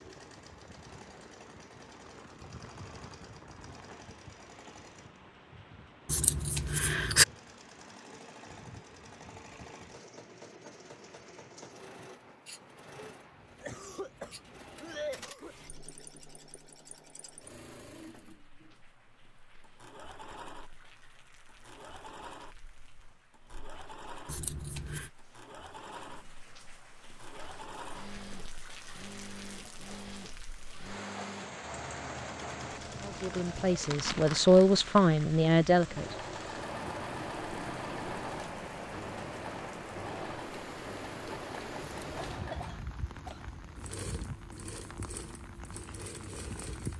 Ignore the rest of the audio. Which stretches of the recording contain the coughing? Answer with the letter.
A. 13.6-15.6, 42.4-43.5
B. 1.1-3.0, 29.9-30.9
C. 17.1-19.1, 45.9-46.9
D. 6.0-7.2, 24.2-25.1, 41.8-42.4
A.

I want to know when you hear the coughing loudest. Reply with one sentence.
The volume of the coughing peaks at 15 seconds.